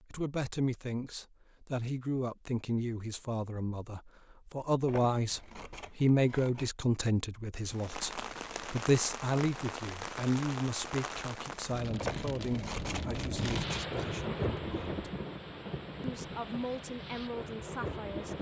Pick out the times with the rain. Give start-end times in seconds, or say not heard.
7.7-18.3.